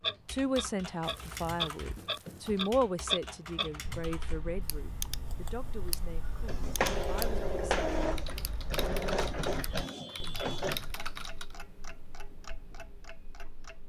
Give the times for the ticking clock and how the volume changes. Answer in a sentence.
You can hear the ticking clock from 0.0 to 13.8 s, getting quieter.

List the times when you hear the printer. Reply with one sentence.
The printer can be heard from 6.2 to 10.9 s.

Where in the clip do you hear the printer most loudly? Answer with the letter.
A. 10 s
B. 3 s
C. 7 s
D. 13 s
C.